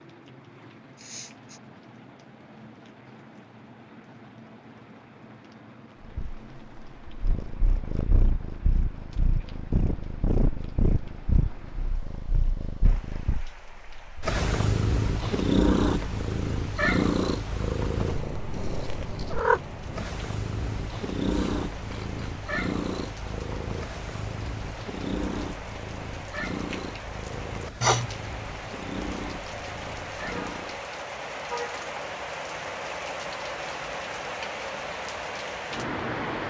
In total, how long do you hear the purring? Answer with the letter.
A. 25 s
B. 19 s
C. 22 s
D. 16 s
A.